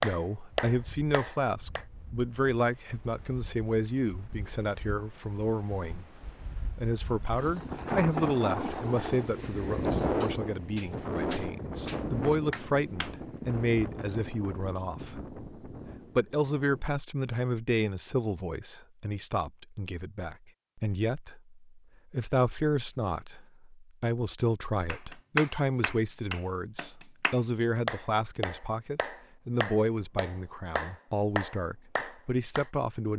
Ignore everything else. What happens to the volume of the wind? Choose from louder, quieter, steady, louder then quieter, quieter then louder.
louder then quieter.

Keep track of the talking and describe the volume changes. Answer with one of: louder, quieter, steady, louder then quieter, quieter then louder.
steady.